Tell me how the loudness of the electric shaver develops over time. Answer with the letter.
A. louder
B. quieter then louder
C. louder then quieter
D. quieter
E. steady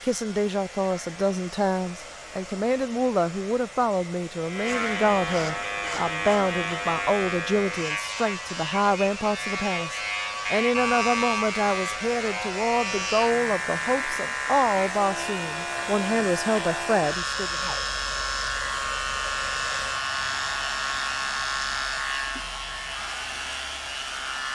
A.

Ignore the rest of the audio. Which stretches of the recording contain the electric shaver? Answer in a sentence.
You can hear the electric shaver from 0.0 to 24.5 s.